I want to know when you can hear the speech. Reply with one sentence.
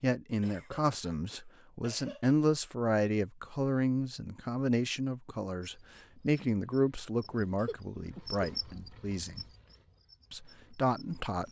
You can hear the speech from 0.0 to 9.4 s and from 10.3 to 11.4 s.